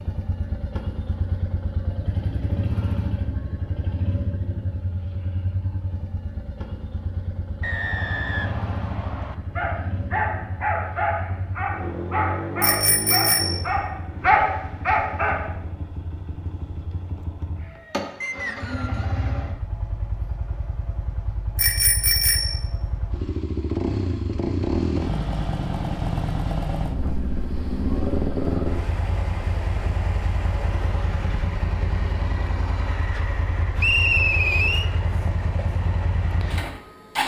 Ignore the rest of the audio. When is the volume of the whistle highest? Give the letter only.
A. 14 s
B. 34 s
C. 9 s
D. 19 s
B.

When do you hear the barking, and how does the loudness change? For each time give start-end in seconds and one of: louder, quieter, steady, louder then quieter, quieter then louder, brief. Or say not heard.
9.1-15.4 louder.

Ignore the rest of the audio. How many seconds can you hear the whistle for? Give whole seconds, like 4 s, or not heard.
4 s.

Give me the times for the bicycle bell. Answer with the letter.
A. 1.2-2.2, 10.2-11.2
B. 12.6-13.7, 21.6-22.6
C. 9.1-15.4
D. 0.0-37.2
B.